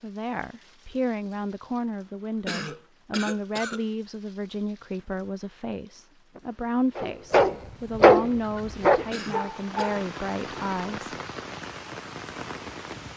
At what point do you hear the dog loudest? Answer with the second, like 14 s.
8 s.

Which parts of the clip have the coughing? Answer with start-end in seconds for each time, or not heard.
2.5-3.9, 9.1-9.9.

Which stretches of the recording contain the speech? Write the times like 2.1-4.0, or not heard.
0.0-11.2.